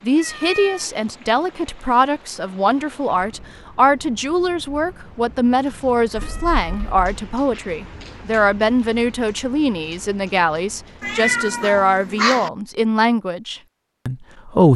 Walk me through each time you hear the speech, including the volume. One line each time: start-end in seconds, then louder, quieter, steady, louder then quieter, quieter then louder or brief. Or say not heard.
0.0-14.7 steady.